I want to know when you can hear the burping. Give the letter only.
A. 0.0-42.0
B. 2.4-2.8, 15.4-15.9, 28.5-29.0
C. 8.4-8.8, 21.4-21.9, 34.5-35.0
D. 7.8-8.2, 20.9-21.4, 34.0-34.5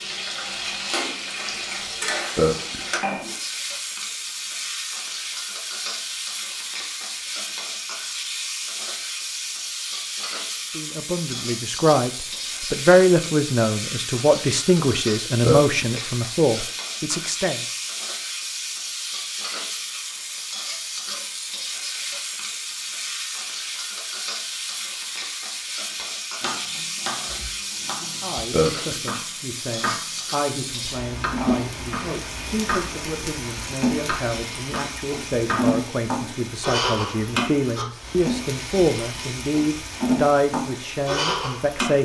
B.